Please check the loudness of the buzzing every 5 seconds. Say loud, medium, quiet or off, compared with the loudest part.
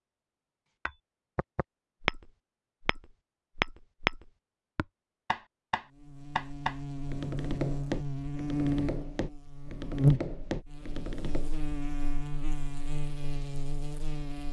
off, loud, loud.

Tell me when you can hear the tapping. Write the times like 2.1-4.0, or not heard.
0.8-11.5.